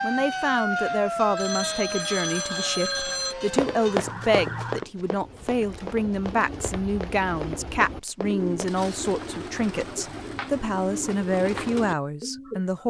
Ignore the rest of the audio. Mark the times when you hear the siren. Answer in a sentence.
The siren can be heard from 0.0 to 4.8 s.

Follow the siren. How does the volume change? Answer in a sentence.
The loudness of the siren goes down.